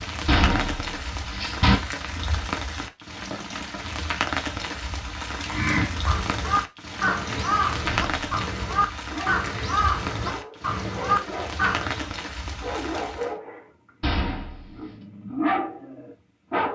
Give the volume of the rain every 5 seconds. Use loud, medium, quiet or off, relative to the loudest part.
loud, loud, loud, off.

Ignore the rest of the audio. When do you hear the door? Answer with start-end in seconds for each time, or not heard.
0.2-1.8, 7.8-8.3, 14.0-14.8.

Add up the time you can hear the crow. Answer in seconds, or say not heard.
7 s.